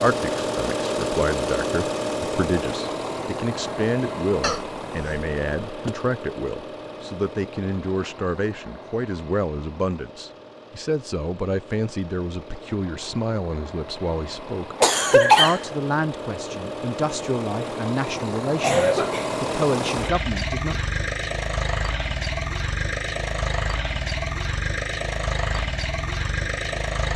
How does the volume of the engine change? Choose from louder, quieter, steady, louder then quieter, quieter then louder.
quieter then louder.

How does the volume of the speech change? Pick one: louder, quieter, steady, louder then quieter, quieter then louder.
steady.